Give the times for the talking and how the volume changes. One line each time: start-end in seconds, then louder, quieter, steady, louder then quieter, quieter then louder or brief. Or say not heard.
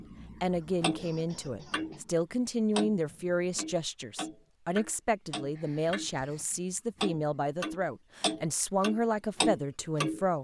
0.4-10.4 steady.